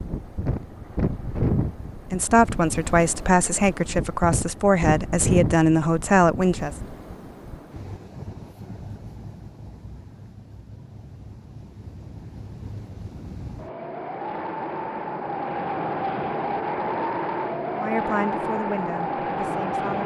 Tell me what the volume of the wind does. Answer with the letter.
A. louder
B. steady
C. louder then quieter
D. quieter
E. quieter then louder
E.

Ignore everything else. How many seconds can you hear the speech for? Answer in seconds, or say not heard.
7 s.